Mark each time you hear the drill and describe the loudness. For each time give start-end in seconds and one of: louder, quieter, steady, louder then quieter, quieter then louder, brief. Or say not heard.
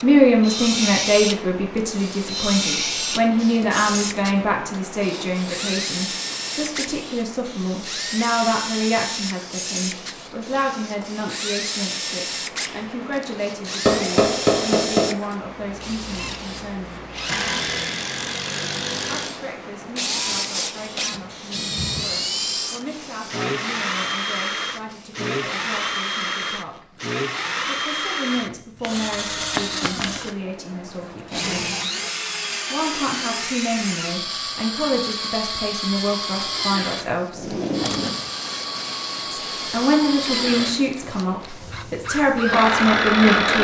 0.0-43.5 steady.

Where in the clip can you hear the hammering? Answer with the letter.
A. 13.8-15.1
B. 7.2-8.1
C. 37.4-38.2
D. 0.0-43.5
A.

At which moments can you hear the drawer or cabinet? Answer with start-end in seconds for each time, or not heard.
37.4-38.2.